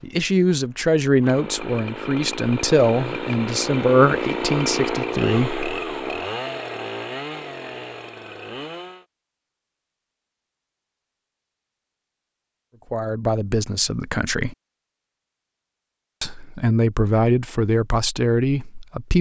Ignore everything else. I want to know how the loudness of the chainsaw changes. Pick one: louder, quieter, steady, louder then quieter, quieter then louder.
louder then quieter.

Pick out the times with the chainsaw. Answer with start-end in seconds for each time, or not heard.
0.0-9.1.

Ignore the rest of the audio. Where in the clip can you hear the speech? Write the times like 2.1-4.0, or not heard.
0.0-5.7, 12.9-14.6, 16.2-19.1.